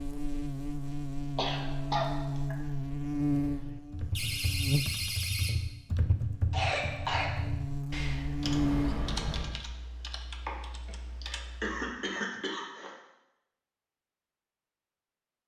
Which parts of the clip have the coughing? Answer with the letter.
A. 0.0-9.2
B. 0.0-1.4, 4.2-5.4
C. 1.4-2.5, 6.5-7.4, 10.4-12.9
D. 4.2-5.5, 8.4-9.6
C.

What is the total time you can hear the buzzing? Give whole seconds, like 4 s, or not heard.
9 s.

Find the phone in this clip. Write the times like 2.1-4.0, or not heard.
not heard.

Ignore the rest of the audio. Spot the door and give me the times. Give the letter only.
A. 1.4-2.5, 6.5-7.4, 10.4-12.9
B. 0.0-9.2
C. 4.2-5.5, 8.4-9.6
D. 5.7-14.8
C.